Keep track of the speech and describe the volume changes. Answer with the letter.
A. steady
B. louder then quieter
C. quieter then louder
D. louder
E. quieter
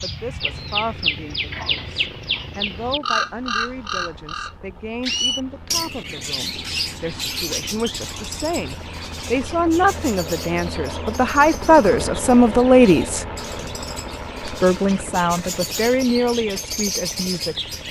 B.